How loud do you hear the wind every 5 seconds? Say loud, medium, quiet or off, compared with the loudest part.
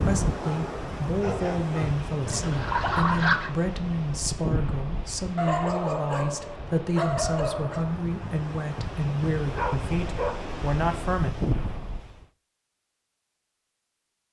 loud, medium, loud.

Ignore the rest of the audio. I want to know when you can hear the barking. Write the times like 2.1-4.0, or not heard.
0.4-1.8, 5.3-7.8, 9.6-10.4.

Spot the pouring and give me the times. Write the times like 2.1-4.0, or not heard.
2.2-3.5.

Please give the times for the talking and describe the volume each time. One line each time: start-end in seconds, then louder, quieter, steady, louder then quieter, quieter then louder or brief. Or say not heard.
0.0-11.3 steady.